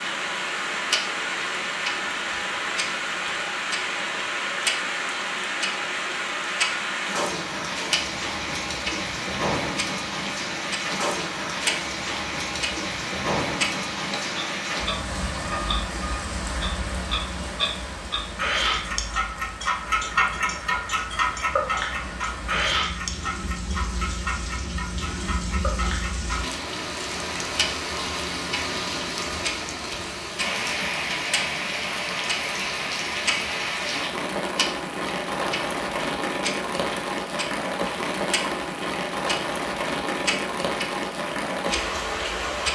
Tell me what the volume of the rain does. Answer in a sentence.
The loudness of the rain goes down, then up.